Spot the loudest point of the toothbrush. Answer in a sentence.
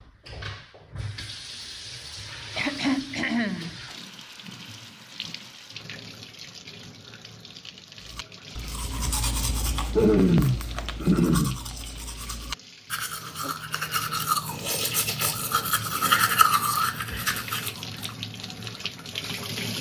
The volume of the toothbrush peaks at 16 seconds.